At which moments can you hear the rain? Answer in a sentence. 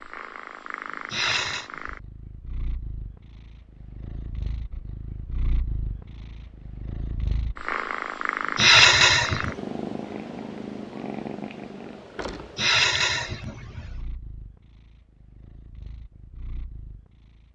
The rain can't be heard in this clip.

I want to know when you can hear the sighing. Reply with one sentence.
You can hear the sighing from 1.1 to 1.7 s, from 8.6 to 9.6 s and from 12.6 to 14.1 s.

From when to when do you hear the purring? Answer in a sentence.
The purring can be heard from 0.0 to 17.5 s.